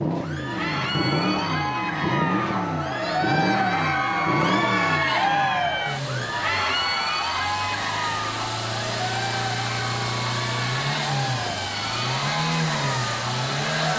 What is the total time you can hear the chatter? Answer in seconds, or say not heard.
14 s.